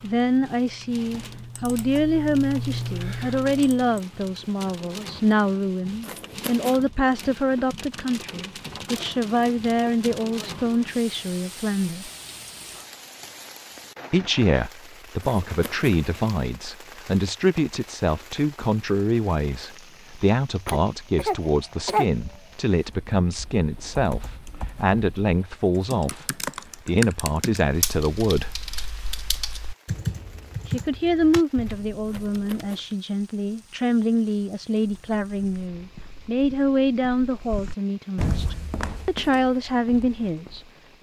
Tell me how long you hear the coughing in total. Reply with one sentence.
You can hear the coughing for 2 seconds altogether.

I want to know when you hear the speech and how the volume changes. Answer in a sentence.
The speech can be heard from 0.0 to 12.1 s, at a steady volume; from 14.1 to 28.6 s, at a steady volume; and from 30.6 to 40.9 s, at a steady volume.